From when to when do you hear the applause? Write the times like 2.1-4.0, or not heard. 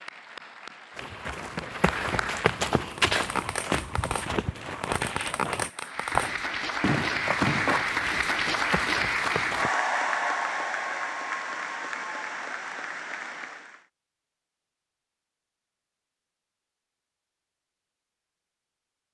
0.0-2.6, 5.7-13.8.